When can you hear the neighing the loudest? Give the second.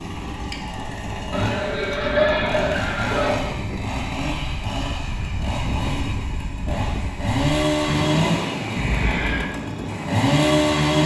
2 s.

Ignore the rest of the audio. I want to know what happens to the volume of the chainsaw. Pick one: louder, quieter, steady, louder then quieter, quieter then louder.
louder.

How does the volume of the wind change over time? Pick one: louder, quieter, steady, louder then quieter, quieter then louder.
louder.